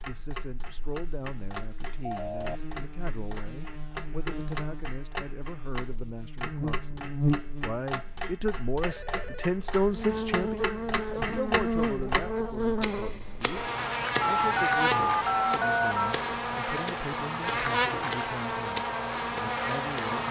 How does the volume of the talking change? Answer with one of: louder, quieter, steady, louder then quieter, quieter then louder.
louder then quieter.